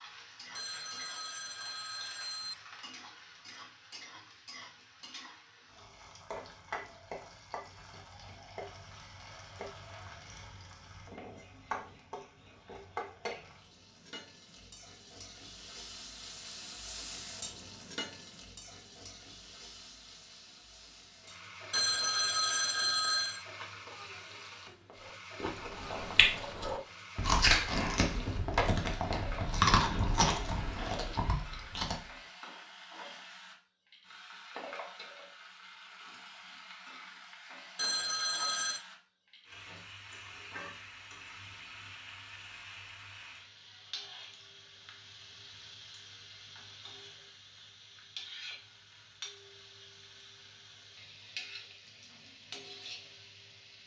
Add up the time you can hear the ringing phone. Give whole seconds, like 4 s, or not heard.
5 s.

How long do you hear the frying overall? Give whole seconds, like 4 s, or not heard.
54 s.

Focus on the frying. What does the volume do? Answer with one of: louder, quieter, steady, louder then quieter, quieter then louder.
steady.